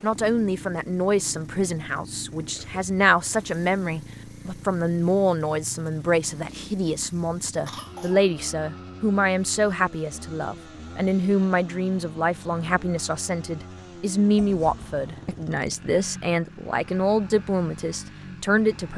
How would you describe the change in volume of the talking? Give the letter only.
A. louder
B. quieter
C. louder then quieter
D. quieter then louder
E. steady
E.